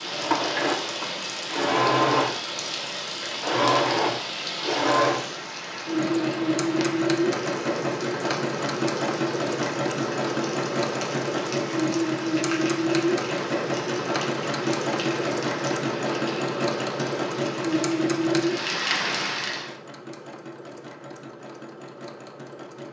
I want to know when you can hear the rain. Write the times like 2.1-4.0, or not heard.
0.0-19.7.